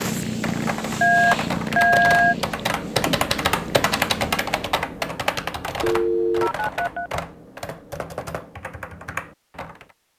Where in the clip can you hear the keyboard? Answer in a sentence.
You can hear the keyboard from 0.2 to 9.9 s.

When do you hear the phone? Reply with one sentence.
The phone can be heard from 1.0 to 2.4 s and from 5.8 to 7.1 s.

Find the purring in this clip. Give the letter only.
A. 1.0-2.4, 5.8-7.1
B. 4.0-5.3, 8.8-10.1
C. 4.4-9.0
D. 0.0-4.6
D.